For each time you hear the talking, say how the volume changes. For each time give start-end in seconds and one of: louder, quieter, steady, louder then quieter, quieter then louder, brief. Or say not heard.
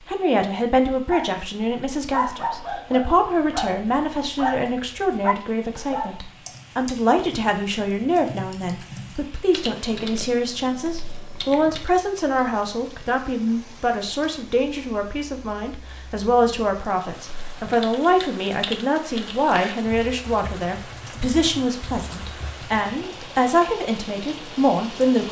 0.1-25.2 steady.